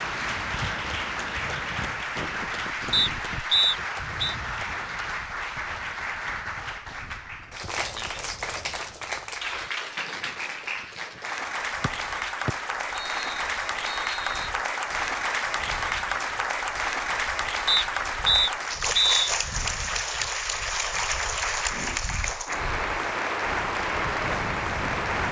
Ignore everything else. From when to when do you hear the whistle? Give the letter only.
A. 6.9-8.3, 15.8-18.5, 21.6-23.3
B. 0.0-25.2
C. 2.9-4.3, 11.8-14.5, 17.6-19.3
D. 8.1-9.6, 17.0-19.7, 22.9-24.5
C.